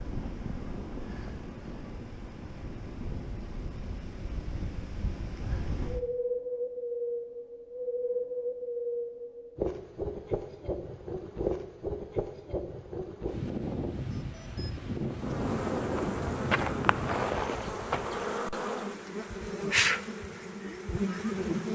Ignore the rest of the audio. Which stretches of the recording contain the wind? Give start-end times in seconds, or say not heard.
0.0-18.2.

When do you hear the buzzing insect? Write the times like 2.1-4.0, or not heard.
15.2-21.7.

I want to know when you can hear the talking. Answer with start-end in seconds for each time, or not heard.
not heard.